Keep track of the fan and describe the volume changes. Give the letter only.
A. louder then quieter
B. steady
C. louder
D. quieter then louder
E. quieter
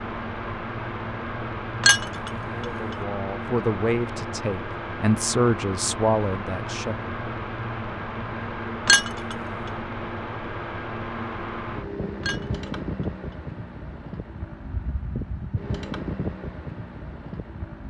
B.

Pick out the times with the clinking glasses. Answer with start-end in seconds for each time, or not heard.
1.8-2.6, 8.8-9.3, 12.2-13.1.